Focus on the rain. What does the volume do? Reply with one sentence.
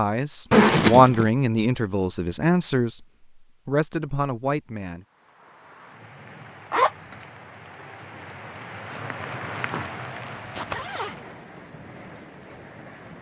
The loudness of the rain goes up, then down.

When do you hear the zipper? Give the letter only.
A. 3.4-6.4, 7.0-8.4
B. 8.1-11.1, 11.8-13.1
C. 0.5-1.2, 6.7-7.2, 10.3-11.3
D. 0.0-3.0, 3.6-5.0
C.